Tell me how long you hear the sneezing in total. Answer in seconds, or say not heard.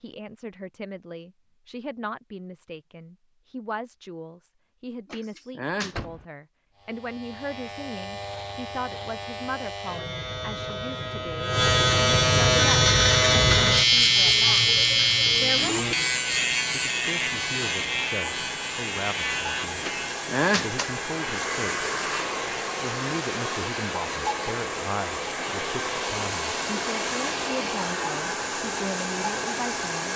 2 s.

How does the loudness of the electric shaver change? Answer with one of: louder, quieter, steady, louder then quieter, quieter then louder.
louder then quieter.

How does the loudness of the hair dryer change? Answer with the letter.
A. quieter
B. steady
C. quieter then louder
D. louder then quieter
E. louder
E.